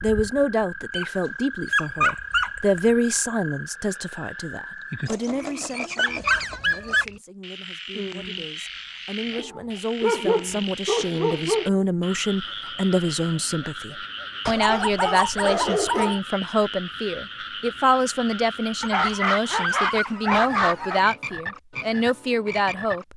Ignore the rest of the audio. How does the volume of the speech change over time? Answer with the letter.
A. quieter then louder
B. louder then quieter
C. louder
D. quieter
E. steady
A.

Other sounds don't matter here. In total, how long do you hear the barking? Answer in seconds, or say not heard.
10 s.